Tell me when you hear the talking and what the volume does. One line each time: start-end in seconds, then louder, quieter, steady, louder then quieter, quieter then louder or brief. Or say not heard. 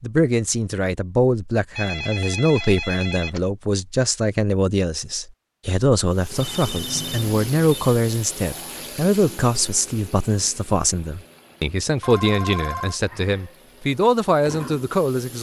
0.0-15.3 steady.